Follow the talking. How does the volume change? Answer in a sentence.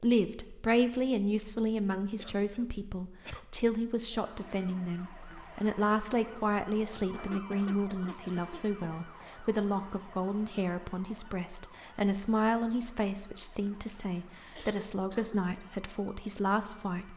The loudness of the talking stays about the same.